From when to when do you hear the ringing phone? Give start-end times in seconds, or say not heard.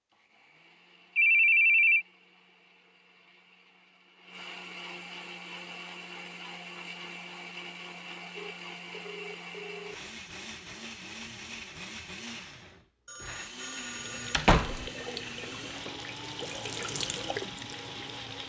1.1-2.0, 8.3-9.9, 13.1-14.4.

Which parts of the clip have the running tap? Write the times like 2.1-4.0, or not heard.
13.8-18.4.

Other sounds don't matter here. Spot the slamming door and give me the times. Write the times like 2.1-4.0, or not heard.
14.3-14.9.